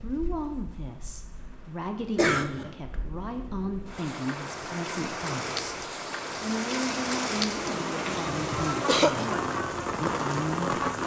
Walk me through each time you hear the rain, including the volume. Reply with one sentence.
You can hear the rain from 0.0 to 11.0 s, getting louder.